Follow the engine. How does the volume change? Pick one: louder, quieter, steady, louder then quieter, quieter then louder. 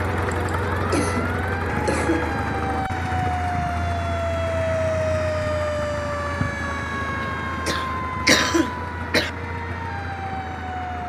quieter.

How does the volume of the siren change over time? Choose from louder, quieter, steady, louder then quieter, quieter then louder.
louder then quieter.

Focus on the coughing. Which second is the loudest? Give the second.
8 s.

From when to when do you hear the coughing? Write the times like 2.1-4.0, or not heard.
0.3-2.3, 7.2-9.3.